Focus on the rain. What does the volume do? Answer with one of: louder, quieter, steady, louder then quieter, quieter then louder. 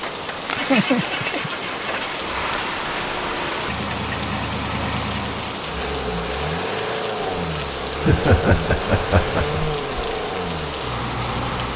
steady.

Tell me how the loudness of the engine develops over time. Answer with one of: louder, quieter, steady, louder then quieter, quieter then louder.
steady.